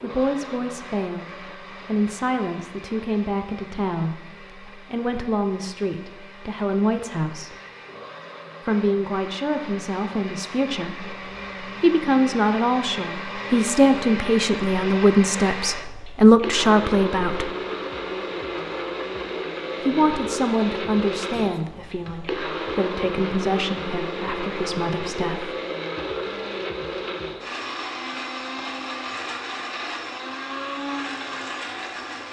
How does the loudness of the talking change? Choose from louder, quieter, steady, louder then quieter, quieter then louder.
louder then quieter.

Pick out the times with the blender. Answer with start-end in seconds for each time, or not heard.
0.0-32.2.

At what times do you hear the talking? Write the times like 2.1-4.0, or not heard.
0.0-7.5, 8.7-17.5, 19.9-25.6.